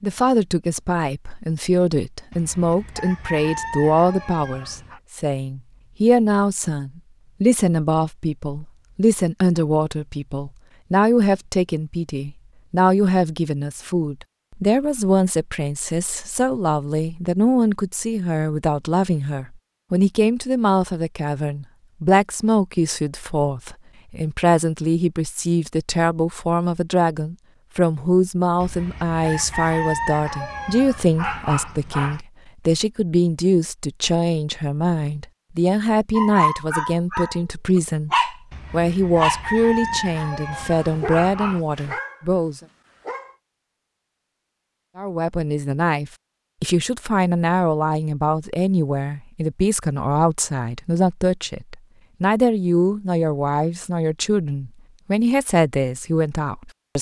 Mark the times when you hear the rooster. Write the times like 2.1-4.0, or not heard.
2.3-5.0, 28.6-32.2, 38.5-41.6.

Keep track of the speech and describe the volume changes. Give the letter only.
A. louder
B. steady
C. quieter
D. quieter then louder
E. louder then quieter
B.